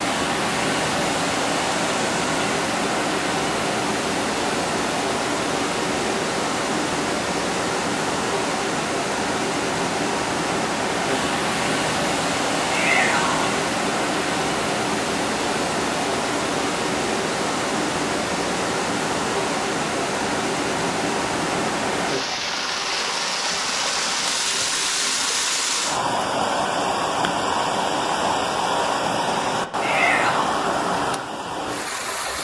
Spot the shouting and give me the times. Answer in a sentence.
The shouting can be heard from 12.7 to 13.4 s and from 29.8 to 30.6 s.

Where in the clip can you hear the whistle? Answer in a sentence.
You can't hear the whistle here.